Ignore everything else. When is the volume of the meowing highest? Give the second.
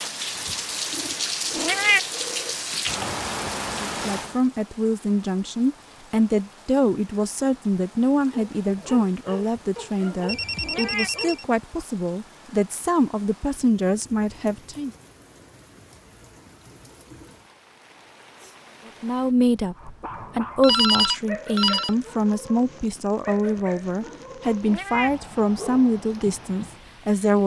2 s.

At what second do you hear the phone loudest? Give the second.
21 s.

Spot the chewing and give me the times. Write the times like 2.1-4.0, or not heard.
not heard.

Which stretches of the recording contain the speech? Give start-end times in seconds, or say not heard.
3.7-14.9, 18.9-27.4.